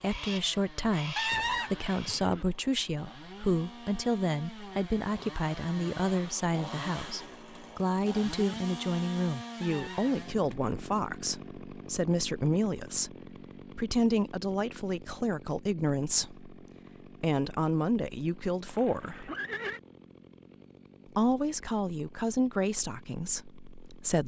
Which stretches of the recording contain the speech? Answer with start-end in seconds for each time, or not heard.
0.0-13.2, 13.8-16.6, 17.2-19.3, 21.1-24.2.